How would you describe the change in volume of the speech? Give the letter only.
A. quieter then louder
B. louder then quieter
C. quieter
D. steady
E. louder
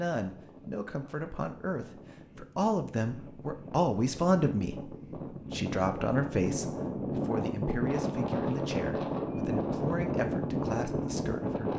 B.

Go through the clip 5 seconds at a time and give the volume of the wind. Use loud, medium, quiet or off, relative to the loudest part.
quiet, loud, loud.